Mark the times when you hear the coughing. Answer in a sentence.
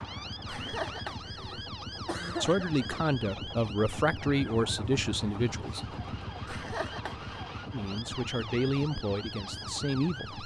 The coughing can be heard from 0.5 to 3.0 s and from 6.5 to 7.3 s.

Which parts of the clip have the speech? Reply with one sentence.
You can hear the speech from 2.4 to 5.8 s and from 7.7 to 10.4 s.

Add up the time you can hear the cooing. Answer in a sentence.
You can't hear the cooing here.